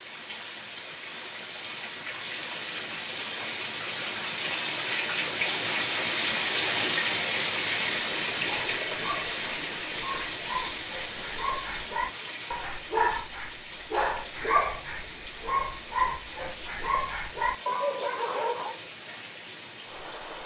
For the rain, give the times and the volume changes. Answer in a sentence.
The rain can be heard from 0.0 to 20.4 s, getting louder then quieter.